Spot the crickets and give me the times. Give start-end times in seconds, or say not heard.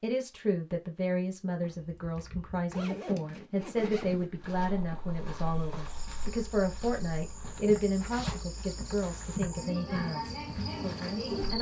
5.3-11.5.